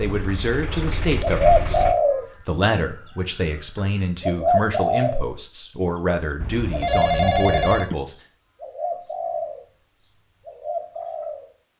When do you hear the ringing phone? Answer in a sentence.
The ringing phone can be heard from 6.4 to 8.0 s.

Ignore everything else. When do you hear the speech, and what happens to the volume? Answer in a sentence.
You can hear the speech from 0.0 to 8.2 s, at a steady volume.